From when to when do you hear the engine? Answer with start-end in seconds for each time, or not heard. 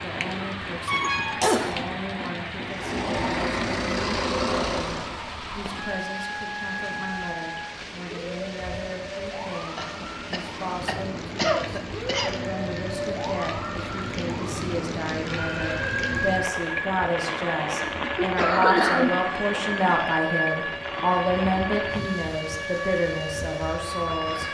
2.6-5.2.